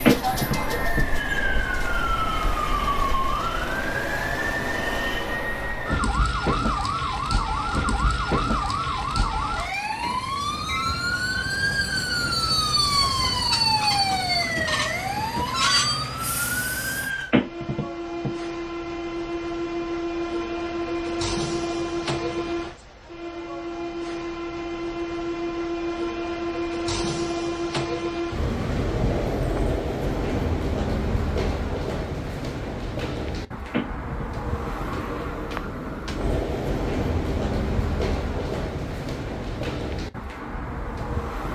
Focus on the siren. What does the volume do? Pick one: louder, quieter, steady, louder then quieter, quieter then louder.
steady.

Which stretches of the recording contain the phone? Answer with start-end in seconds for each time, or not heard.
0.1-1.0, 17.3-18.3, 33.7-34.7.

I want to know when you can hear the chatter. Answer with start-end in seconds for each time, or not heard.
not heard.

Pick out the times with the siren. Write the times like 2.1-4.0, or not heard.
0.0-17.3.